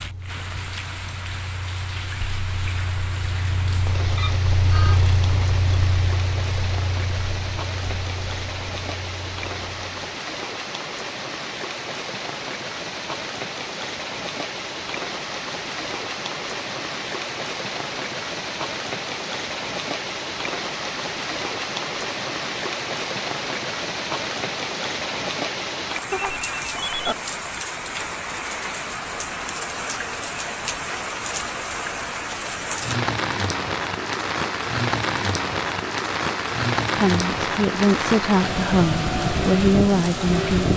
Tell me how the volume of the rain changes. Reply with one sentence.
The loudness of the rain goes up.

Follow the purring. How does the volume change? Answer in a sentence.
The volume of the purring goes up, then down.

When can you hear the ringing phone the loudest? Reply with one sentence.
The loudest moment of the ringing phone is at 27 seconds.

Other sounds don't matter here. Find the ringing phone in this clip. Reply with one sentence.
You can hear the ringing phone from 4.2 to 5.0 s and from 26.1 to 27.1 s.